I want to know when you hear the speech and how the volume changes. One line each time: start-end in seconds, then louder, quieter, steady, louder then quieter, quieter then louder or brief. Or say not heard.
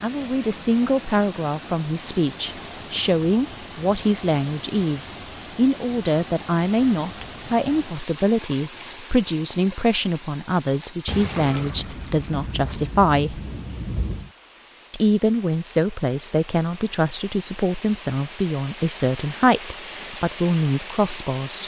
0.0-13.4 steady
14.9-21.6 steady.